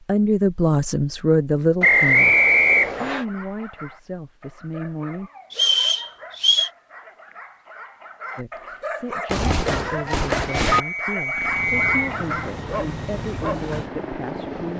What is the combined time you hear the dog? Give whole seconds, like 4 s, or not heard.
11 s.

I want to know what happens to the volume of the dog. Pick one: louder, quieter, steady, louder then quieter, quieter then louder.
louder.